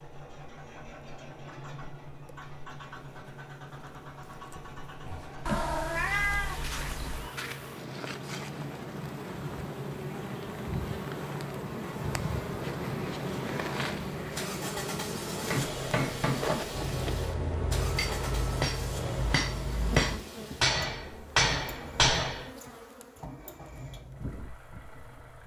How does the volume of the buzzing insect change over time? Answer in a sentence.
The volume of the buzzing insect goes up, then down.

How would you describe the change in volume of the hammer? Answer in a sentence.
The volume of the hammer goes up.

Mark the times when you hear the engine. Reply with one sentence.
The engine can be heard from 0.0 to 25.4 s.